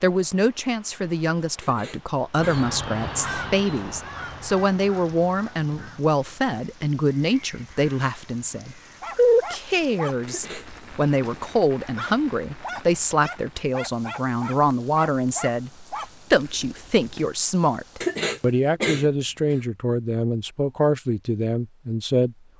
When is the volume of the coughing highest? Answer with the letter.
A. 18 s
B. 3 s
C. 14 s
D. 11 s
A.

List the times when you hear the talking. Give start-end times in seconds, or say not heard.
0.0-22.4.